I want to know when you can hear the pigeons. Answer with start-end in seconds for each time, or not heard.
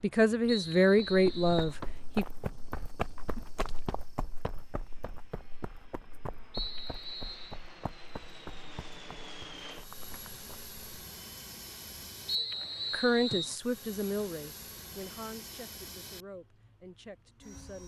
not heard.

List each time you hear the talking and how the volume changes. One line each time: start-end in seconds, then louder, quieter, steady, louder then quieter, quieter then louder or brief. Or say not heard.
0.0-2.2 brief
12.9-17.8 quieter.